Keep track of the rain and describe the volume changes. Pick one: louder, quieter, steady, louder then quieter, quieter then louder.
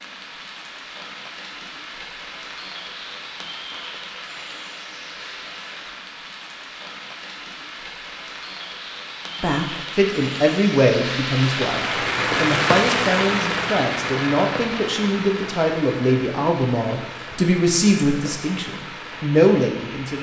louder then quieter.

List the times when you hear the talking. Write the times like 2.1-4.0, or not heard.
9.4-20.1.